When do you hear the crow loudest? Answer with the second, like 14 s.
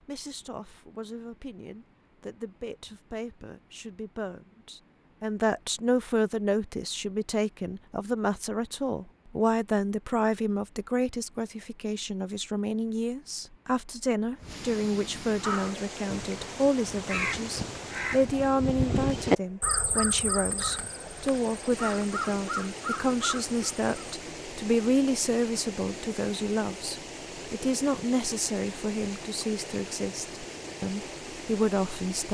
19 s.